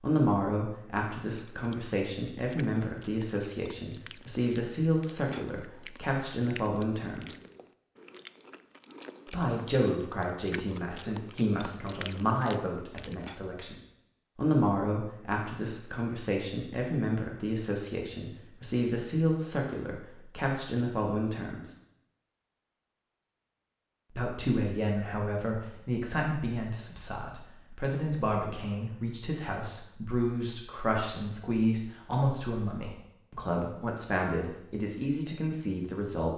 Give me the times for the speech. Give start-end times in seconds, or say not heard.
0.0-7.3, 9.2-13.8, 14.3-21.7, 24.1-36.3.